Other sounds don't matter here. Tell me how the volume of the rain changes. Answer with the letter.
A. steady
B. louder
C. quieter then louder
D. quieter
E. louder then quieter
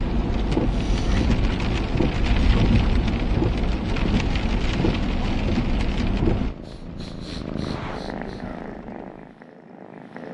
D.